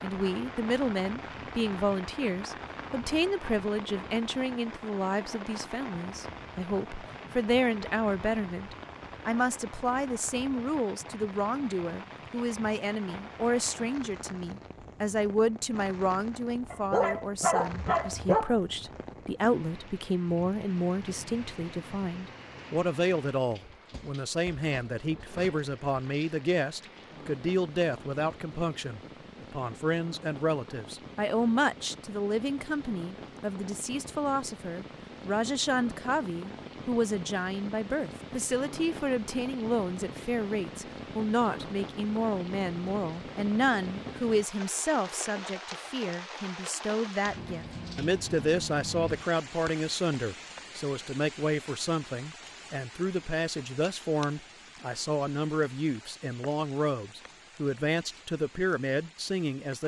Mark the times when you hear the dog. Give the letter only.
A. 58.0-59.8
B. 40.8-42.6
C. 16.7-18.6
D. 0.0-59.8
C.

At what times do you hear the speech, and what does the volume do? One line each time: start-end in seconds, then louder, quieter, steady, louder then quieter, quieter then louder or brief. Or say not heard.
0.0-59.8 steady.